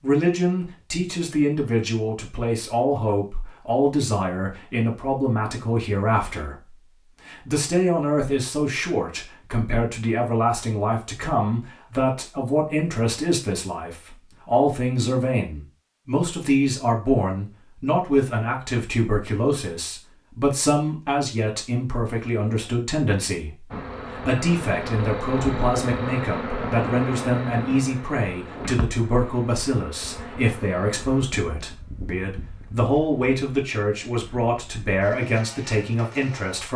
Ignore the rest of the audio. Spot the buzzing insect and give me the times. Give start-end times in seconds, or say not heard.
23.7-36.7.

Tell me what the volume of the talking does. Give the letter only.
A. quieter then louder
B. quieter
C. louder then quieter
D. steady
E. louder
D.